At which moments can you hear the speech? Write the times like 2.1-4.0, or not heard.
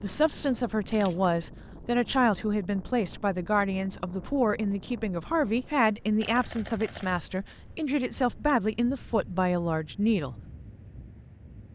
0.0-10.3.